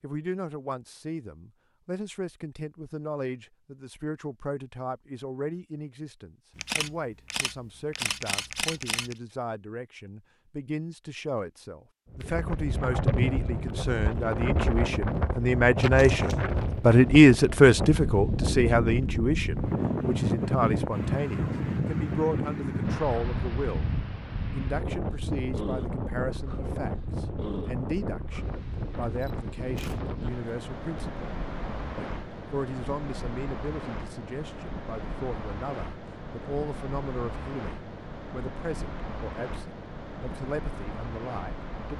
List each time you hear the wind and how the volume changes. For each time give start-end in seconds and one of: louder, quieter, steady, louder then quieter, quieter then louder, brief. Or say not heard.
12.1-41.9 quieter.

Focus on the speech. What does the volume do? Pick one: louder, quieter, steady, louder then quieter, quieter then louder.
louder then quieter.